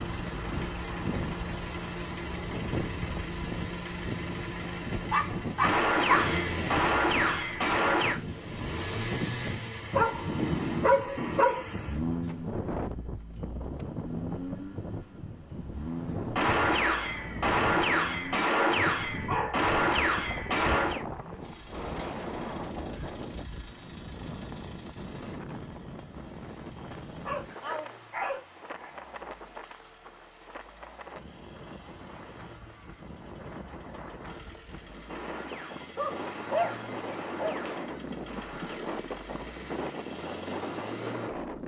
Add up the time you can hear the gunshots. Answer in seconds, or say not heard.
11 s.